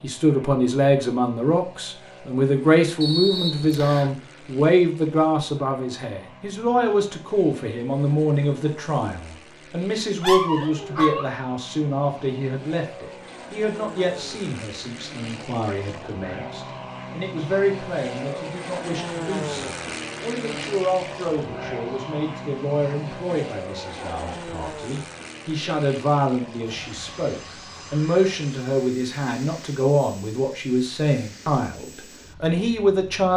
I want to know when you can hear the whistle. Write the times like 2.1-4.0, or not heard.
3.0-4.2.